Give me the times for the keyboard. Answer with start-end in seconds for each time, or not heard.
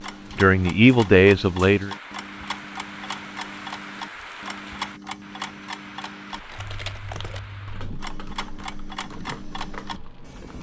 6.3-10.5.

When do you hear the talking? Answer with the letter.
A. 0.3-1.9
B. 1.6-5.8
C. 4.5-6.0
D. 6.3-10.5
A.